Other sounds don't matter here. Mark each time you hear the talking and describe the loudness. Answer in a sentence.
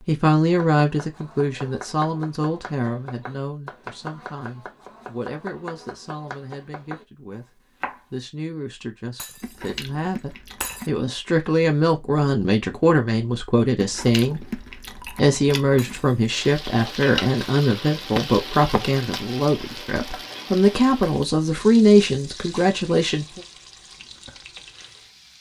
The talking can be heard from 0.1 to 7.5 s, getting quieter; and from 8.1 to 23.4 s, getting louder.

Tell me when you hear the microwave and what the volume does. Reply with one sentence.
You can't hear the microwave here.